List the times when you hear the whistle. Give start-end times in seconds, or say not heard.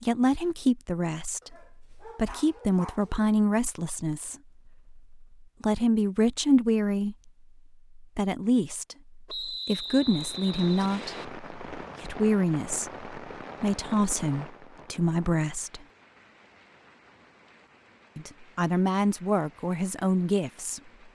9.2-11.2.